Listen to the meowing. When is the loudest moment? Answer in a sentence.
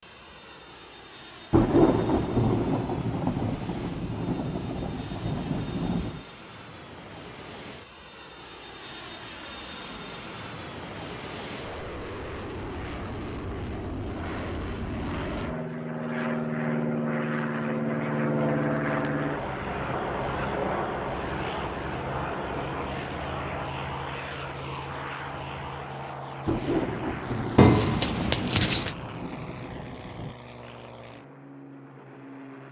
The volume of the meowing peaks at 28 seconds.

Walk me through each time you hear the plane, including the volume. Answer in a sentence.
You can hear the plane from 0.0 to 32.6 s, getting louder then quieter.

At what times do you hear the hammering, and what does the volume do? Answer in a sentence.
You can't hear the hammering here.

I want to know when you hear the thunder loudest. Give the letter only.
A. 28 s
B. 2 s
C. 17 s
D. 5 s
B.